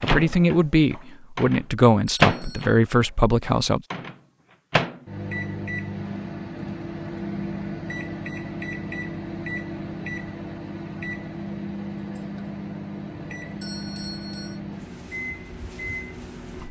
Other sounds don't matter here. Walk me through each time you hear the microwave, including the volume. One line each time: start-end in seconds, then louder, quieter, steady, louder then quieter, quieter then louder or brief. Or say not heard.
0.0-16.6 quieter.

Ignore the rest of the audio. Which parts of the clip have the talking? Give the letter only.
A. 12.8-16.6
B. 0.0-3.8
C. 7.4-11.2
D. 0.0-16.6
B.